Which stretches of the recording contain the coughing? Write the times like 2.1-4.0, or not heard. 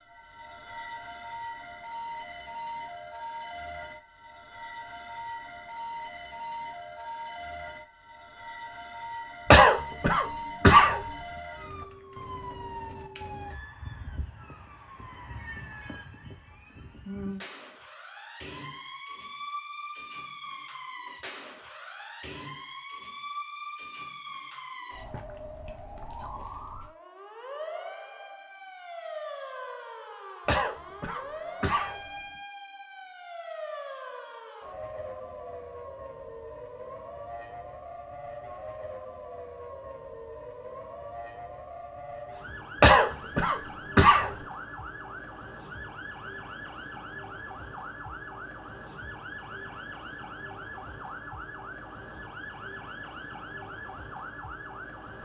9.5-11.0, 30.4-32.0, 42.8-44.4.